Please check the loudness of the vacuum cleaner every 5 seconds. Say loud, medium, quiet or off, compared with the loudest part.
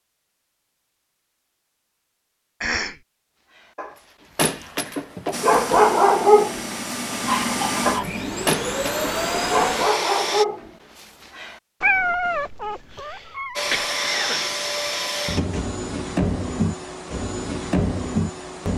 off, loud, loud, loud.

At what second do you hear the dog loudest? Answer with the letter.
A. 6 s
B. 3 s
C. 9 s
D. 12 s
A.